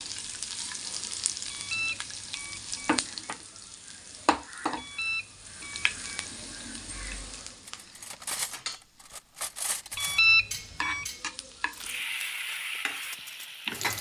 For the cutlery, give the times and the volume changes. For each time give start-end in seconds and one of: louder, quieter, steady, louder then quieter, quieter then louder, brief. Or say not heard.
7.5-13.6 quieter.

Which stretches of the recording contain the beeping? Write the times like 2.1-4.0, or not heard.
1.4-3.0, 4.8-6.2, 9.9-11.1.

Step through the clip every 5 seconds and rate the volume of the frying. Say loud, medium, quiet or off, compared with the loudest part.
loud, medium, loud.